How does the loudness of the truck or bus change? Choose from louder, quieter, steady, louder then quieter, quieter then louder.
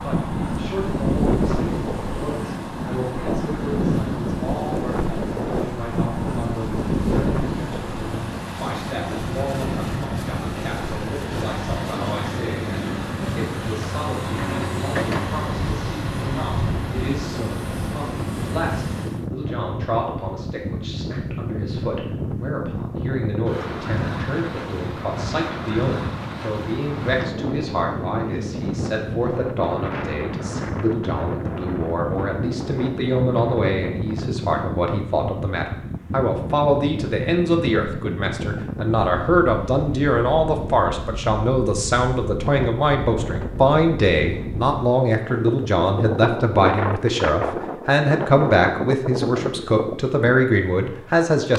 louder.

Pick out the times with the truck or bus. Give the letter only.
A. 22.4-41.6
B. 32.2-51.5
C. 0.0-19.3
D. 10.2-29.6
C.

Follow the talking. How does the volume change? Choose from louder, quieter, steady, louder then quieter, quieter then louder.
louder.